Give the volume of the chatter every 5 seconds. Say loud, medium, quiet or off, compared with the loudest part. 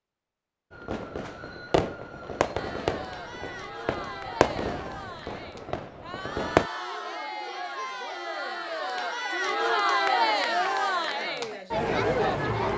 quiet, medium, loud.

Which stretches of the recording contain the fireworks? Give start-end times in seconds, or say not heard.
0.7-6.7.